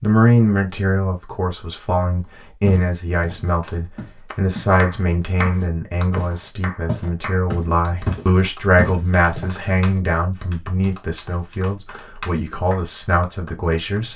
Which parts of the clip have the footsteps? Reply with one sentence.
The footsteps can be heard from 2.6 to 4.8 s and from 5.4 to 9.7 s.